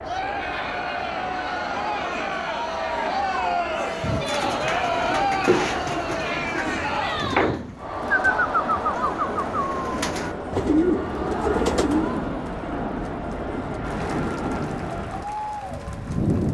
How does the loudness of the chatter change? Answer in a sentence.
The loudness of the chatter goes down.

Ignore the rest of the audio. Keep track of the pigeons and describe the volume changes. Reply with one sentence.
The volume of the pigeons goes up.